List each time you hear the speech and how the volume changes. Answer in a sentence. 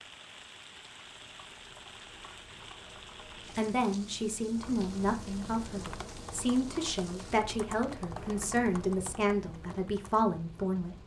You can hear the speech from 3.5 to 10.9 s, at a steady volume.